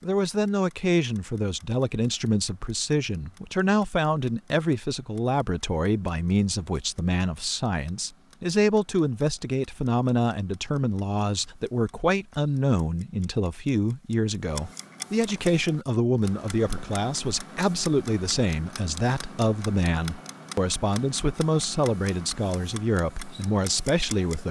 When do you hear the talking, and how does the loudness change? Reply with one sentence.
The talking can be heard from 0.0 to 24.4 s, at a steady volume.